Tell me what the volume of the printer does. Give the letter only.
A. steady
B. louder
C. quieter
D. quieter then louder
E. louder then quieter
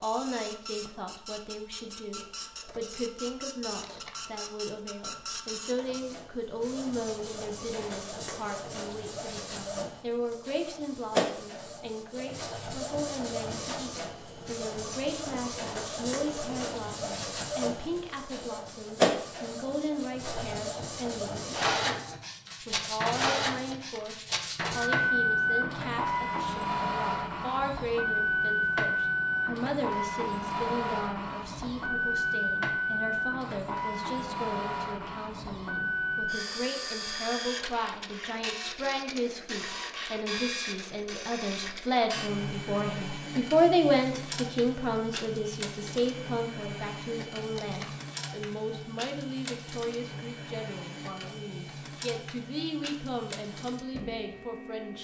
E.